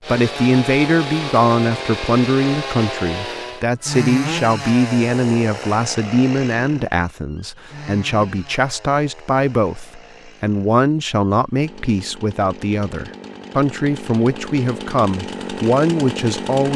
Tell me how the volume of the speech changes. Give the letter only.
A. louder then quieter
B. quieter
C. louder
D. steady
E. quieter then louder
D.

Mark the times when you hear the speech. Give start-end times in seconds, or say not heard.
0.1-16.7.